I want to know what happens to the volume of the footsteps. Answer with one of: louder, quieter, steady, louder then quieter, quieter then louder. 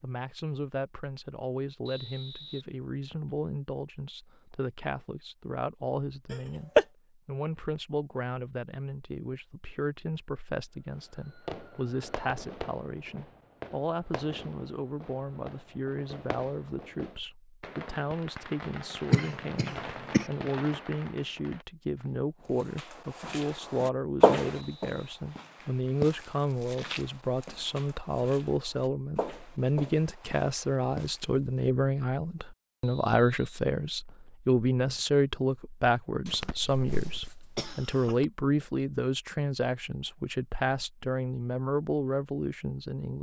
quieter.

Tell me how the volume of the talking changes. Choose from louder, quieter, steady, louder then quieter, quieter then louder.
louder.